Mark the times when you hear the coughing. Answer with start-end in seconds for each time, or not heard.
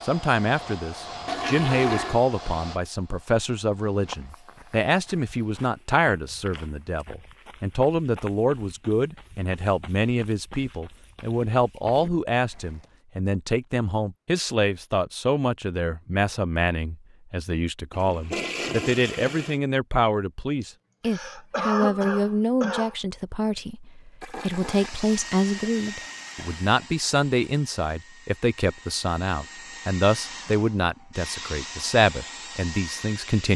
21.1-22.9.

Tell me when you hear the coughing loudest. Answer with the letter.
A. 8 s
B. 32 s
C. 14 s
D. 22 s
D.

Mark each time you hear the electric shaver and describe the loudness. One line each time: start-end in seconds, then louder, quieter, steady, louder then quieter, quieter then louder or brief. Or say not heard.
not heard.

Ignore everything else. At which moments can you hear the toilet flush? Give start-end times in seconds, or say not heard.
1.2-2.2, 17.9-19.6, 24.2-26.6.